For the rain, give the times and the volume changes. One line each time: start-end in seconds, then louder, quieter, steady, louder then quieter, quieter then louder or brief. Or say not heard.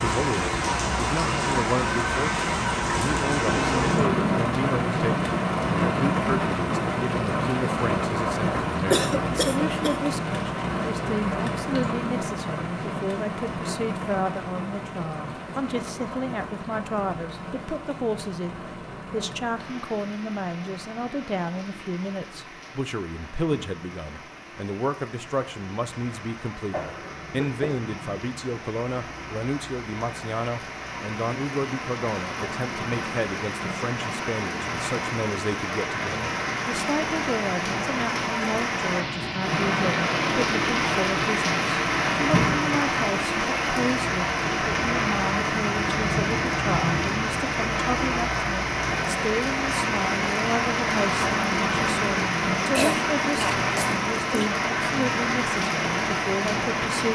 0.0-57.0 quieter then louder.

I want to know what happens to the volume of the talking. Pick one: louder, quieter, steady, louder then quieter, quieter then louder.
steady.